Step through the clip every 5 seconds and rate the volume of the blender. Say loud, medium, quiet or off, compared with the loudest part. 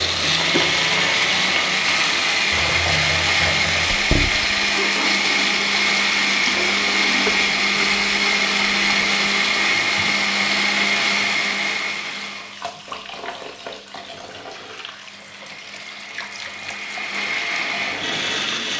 loud, loud, loud, medium.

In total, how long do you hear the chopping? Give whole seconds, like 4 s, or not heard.
not heard.